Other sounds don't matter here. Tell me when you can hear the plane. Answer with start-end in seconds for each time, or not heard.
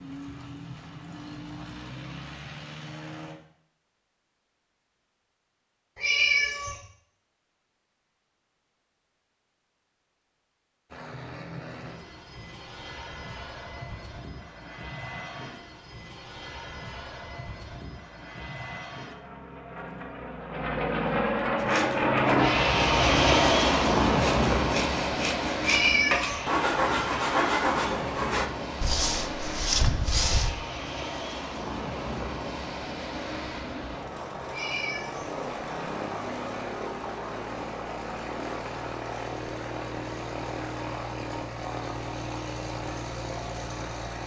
0.0-3.4, 10.9-44.2.